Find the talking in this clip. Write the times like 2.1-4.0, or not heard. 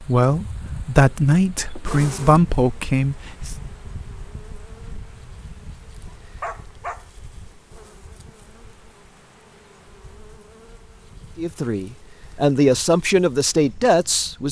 0.0-3.5, 11.3-14.4.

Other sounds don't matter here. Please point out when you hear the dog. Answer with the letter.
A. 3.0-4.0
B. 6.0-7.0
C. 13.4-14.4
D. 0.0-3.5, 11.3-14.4
B.